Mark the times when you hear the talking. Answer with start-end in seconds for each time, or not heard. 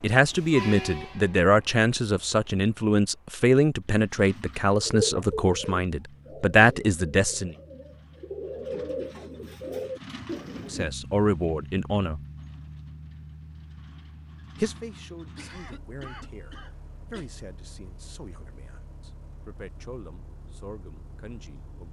0.0-7.5, 10.7-12.2, 14.6-21.8.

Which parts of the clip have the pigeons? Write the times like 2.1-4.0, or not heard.
4.3-10.8.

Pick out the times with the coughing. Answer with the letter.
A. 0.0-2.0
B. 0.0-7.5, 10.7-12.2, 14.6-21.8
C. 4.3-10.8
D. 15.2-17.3
D.